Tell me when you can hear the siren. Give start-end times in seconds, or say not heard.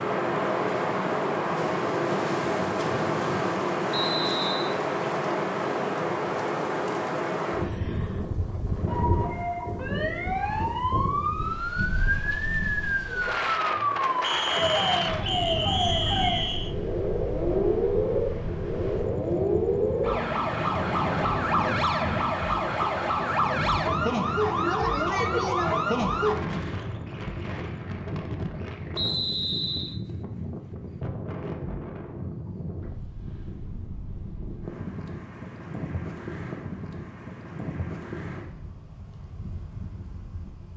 8.8-26.4.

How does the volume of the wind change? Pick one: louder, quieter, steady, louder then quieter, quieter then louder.
quieter.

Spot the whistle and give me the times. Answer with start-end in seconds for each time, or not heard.
3.9-4.8, 14.2-16.8, 28.9-30.0.